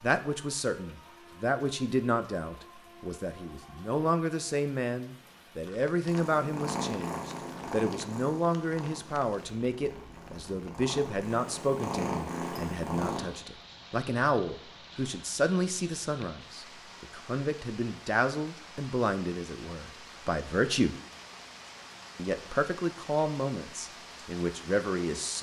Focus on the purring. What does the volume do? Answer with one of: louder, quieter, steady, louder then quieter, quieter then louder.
quieter then louder.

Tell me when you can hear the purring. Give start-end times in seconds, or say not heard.
6.0-13.4.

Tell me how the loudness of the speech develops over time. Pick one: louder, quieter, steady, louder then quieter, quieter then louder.
steady.